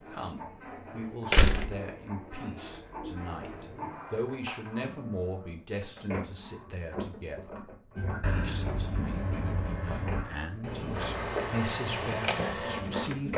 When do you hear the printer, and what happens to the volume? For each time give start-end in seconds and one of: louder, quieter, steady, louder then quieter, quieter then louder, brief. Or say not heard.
0.0-13.3 louder.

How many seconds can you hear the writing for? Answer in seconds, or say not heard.
5 s.